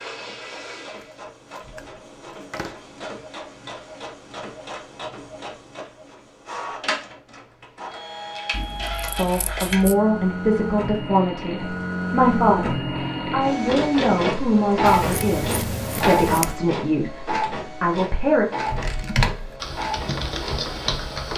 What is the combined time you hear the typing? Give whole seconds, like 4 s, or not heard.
3 s.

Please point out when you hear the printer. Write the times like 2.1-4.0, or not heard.
0.0-21.3.